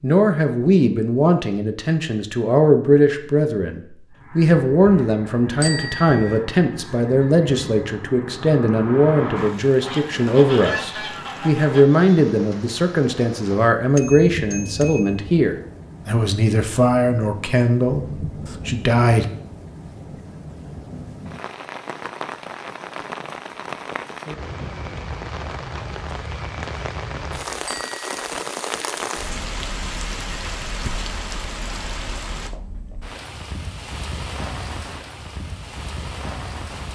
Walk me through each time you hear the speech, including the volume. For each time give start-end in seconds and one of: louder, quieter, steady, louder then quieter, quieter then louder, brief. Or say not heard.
0.0-19.2 steady.